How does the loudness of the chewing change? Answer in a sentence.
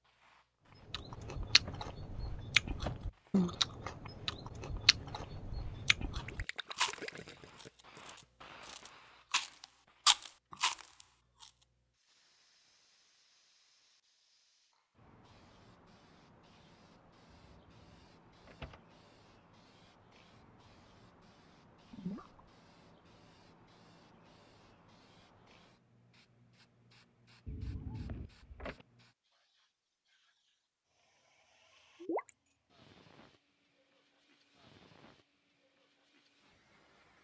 The volume of the chewing goes down, then up.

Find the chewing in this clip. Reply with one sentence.
The chewing can be heard from 0.9 to 11.4 s.